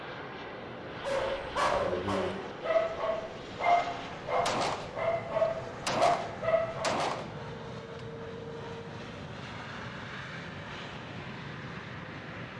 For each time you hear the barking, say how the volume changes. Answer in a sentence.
The barking can be heard from 1.0 to 7.0 s, at a steady volume.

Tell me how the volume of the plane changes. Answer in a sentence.
The loudness of the plane stays about the same.